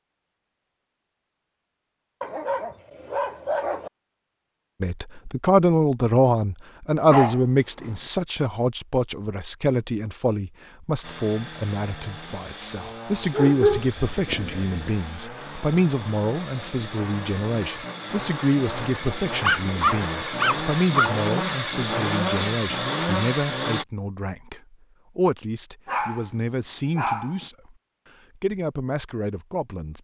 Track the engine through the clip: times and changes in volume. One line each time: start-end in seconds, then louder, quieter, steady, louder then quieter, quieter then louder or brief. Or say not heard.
11.0-23.9 louder.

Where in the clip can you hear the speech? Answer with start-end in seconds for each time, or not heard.
4.8-27.8, 28.4-29.9.